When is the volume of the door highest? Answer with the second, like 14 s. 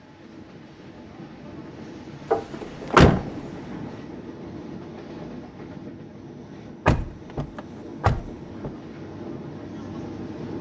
3 s.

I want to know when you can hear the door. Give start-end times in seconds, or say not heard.
2.3-3.5, 6.8-8.7.